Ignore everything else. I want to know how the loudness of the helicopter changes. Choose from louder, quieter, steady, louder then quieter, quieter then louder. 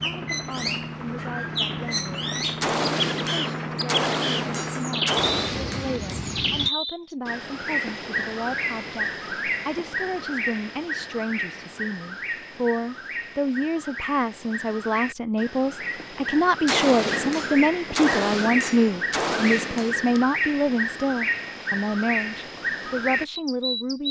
steady.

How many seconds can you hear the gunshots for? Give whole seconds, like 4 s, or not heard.
7 s.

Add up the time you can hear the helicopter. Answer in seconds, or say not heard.
7 s.